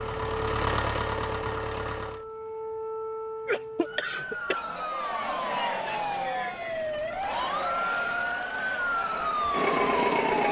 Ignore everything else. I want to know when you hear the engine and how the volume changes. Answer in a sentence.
You can hear the engine briefly from 0.0 to 2.2 s; and from 6.4 to 10.4 s, getting louder.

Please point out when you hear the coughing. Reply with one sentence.
You can hear the coughing from 3.5 to 4.7 s.